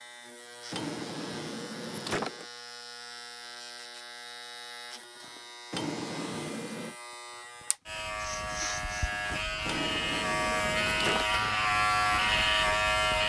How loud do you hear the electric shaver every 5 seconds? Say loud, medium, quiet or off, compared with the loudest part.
quiet, medium, loud.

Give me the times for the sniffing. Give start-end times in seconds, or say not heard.
8.2-9.1.